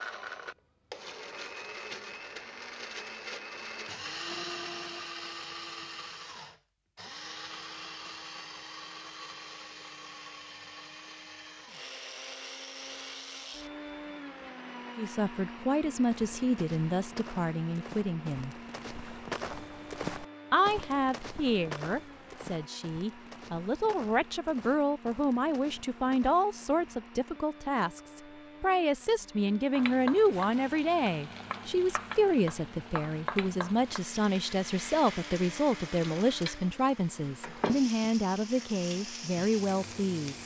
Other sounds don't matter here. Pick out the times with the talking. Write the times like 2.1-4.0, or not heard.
14.9-18.6, 20.5-40.4.